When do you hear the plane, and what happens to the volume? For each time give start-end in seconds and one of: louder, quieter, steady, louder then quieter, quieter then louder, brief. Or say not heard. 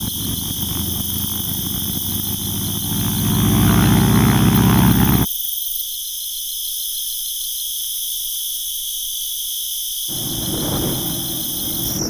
0.0-5.2 louder
10.1-12.0 brief.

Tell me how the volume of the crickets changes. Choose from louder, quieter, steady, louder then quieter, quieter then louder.
steady.